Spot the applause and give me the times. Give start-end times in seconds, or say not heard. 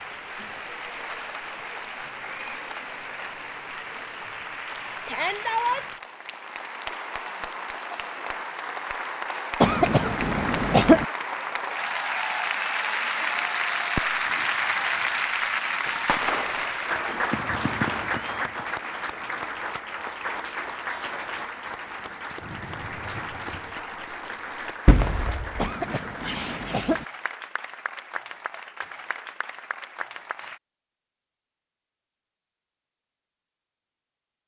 0.0-30.6.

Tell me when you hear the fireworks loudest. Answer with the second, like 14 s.
25 s.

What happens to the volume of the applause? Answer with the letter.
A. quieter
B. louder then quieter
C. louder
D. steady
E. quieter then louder
B.